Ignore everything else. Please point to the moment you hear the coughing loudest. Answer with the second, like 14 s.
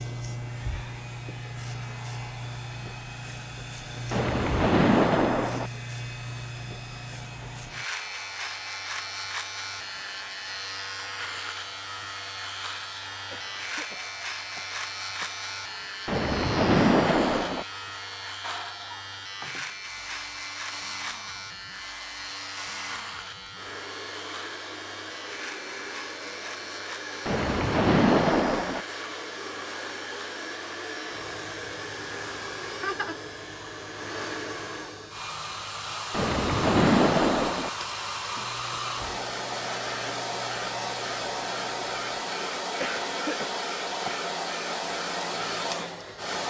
43 s.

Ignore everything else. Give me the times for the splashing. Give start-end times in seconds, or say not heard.
4.1-5.7, 16.1-17.6, 27.2-28.8, 36.1-37.7.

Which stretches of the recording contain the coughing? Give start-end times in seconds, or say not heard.
12.8-15.3, 42.4-44.3.